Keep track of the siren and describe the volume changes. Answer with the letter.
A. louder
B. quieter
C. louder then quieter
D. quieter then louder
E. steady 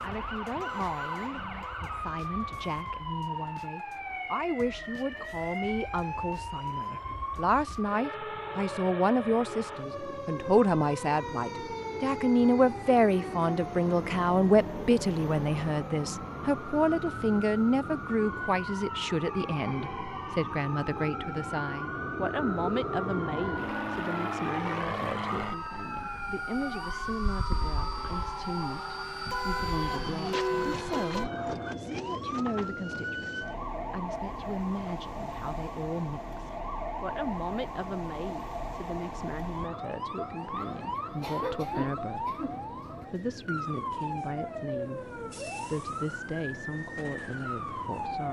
E.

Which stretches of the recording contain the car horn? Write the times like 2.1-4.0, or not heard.
0.6-1.9, 29.2-31.2.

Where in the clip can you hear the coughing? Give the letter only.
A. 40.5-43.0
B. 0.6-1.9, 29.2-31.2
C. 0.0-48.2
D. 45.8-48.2
A.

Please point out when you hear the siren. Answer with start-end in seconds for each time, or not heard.
0.0-48.2.